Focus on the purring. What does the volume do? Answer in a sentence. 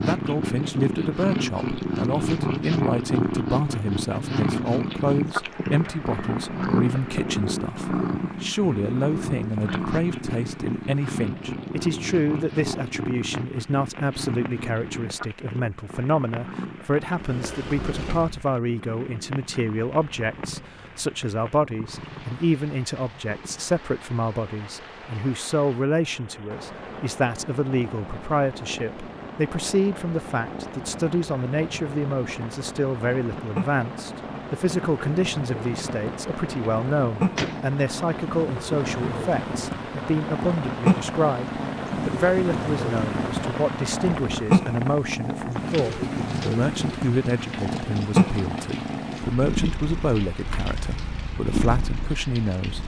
The loudness of the purring goes down, then up.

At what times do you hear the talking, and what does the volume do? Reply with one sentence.
The talking can be heard from 0.0 to 52.8 s, at a steady volume.